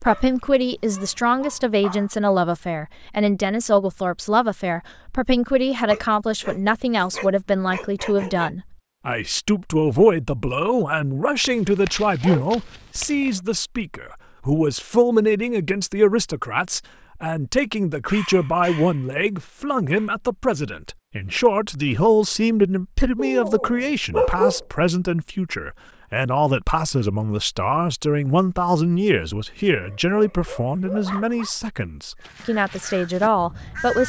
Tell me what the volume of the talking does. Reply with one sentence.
The volume of the talking stays about the same.